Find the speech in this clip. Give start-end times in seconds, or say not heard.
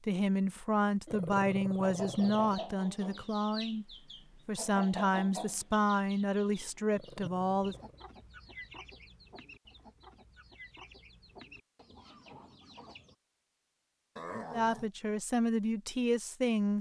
0.1-3.9, 4.5-7.8, 14.5-16.7.